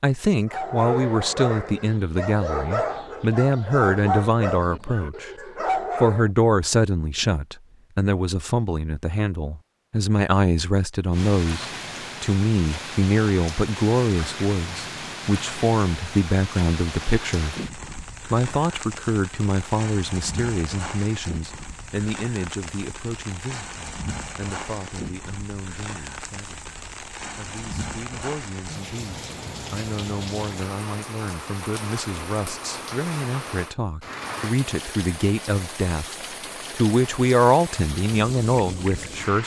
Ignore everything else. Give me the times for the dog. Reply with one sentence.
The dog can be heard from 0.5 to 6.3 s.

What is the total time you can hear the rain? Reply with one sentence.
The rain can be heard for 28 seconds in total.